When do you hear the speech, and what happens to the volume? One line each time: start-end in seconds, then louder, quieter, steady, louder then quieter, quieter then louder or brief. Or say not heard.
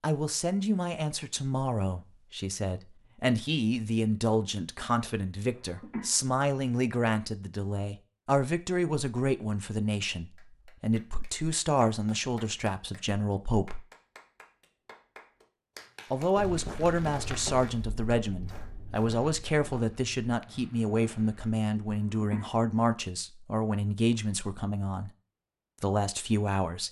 0.0-13.8 steady
16.1-25.1 steady
25.8-26.8 brief.